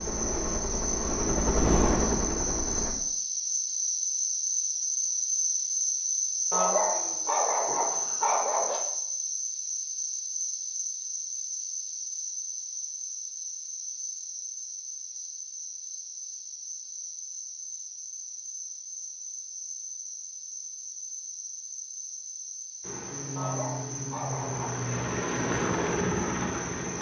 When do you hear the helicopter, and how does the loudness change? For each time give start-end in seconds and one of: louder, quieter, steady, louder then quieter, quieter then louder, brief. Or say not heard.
0.0-3.0 brief
22.8-26.9 louder.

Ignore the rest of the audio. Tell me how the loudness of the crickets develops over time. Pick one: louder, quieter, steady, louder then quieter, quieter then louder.
quieter.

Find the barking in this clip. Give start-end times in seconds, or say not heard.
6.5-8.8, 23.4-24.9.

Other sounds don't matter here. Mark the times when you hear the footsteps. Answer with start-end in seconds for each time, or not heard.
not heard.